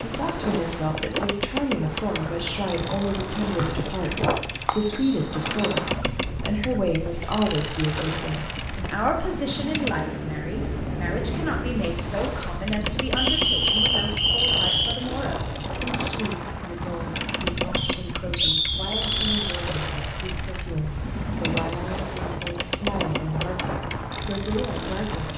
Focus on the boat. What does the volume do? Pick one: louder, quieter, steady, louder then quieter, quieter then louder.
steady.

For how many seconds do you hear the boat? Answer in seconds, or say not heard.
25 s.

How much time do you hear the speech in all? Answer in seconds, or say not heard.
25 s.